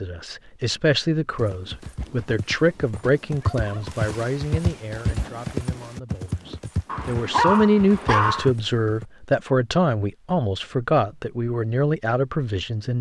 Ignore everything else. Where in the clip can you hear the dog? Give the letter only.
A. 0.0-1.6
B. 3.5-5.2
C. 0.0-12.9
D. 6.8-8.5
D.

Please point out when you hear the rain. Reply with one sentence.
You can't hear the rain here.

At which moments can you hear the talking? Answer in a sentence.
You can hear the talking from 0.0 to 12.9 s.